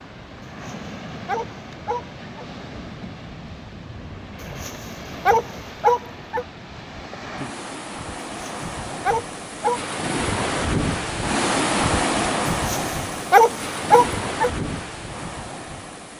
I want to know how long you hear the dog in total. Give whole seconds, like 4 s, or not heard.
7 s.